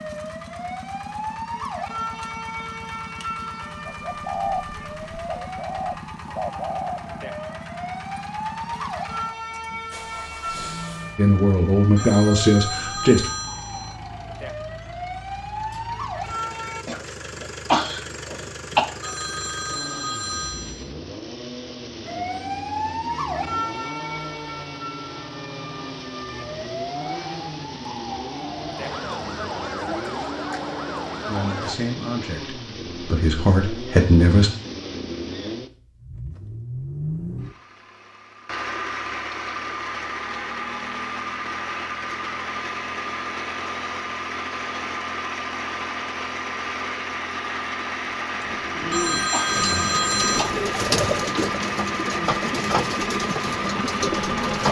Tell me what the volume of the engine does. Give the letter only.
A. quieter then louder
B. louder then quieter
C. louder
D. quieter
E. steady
C.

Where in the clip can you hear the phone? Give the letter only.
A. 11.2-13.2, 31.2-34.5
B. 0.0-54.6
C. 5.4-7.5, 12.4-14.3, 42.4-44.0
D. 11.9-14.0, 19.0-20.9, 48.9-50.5
D.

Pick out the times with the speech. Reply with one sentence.
The speech can be heard from 11.2 to 13.2 s and from 31.2 to 34.5 s.